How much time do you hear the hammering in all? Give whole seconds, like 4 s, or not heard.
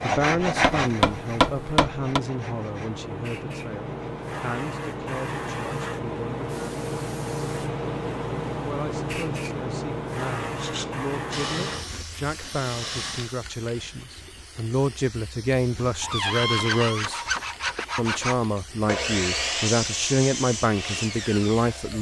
2 s.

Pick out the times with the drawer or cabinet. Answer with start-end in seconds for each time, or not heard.
16.0-17.1.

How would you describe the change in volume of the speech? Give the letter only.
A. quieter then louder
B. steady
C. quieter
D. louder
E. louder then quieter
A.